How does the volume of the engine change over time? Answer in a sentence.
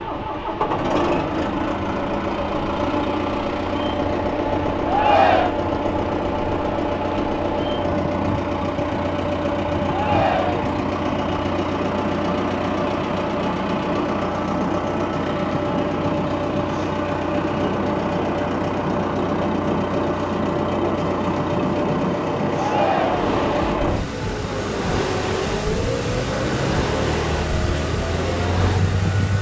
The volume of the engine stays about the same.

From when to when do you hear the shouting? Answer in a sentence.
You can hear the shouting from 4.8 to 5.5 s, from 9.8 to 10.7 s and from 22.6 to 23.3 s.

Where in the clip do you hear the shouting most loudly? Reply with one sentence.
The volume of the shouting peaks at 5 seconds.